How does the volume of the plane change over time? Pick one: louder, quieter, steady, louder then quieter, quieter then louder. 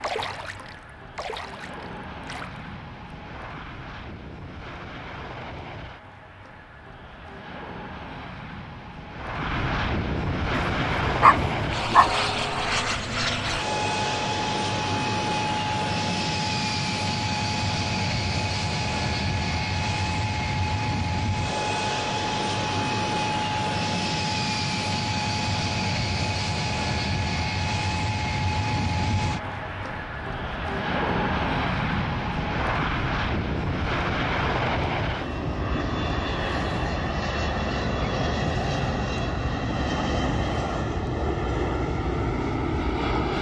louder.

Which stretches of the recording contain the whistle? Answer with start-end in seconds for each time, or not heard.
not heard.